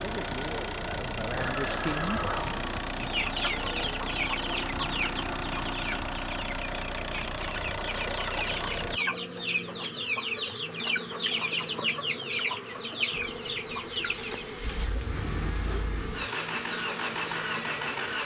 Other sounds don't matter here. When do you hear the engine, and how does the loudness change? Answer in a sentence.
You can hear the engine from 0.0 to 9.0 s, at a steady volume; and from 13.1 to 18.2 s, getting louder.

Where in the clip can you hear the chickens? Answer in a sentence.
The chickens can be heard from 3.0 to 14.4 s.